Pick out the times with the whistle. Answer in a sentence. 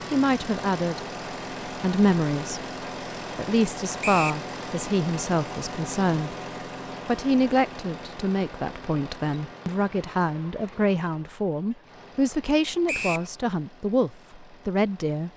You can hear the whistle from 4.0 to 4.5 s and from 12.8 to 13.3 s.